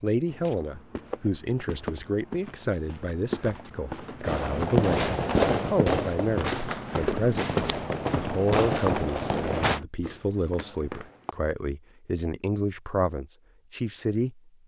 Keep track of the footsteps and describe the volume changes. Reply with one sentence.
The loudness of the footsteps goes up, then down.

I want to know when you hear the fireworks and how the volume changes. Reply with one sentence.
The fireworks can be heard from 4.2 to 9.8 s, getting quieter then louder.